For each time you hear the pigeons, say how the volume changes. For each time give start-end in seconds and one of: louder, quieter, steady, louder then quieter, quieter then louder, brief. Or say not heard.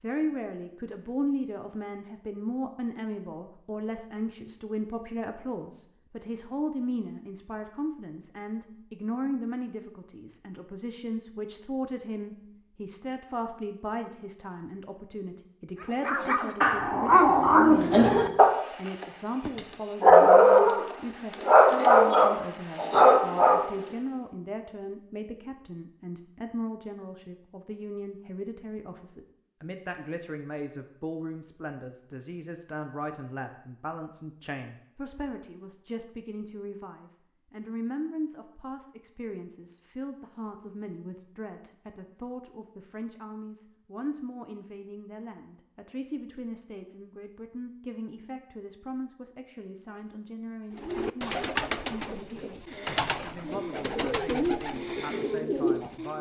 50.8-56.1 quieter then louder.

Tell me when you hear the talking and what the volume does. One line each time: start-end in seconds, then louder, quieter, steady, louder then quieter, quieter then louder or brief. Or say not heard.
0.0-56.1 quieter.